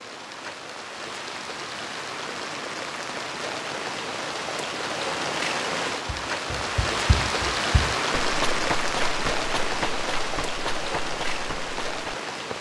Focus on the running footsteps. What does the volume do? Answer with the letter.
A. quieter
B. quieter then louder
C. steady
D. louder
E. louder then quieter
E.